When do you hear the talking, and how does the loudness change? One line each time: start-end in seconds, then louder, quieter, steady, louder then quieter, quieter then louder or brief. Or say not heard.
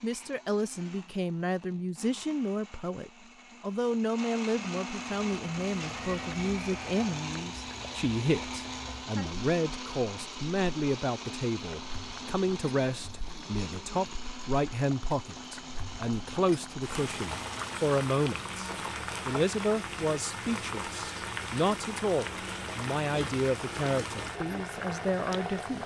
0.0-25.8 steady.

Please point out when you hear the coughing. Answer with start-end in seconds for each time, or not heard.
not heard.